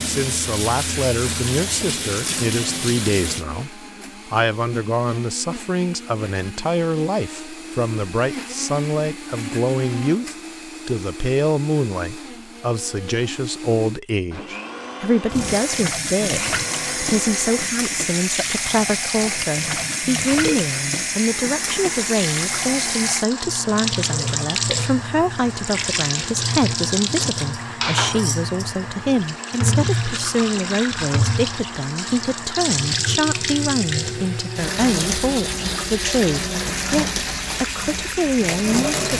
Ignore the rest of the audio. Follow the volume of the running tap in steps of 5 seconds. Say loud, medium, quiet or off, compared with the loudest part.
loud, off, off, loud, loud, loud, loud, loud.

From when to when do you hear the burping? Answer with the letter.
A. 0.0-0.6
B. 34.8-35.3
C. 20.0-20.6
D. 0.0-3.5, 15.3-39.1
C.